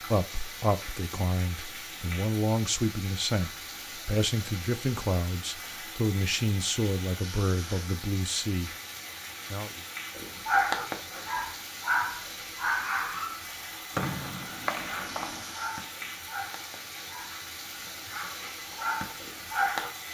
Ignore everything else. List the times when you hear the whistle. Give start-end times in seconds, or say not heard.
13.9-15.6.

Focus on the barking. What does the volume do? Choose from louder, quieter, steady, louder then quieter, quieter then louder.
quieter then louder.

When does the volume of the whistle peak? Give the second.
14 s.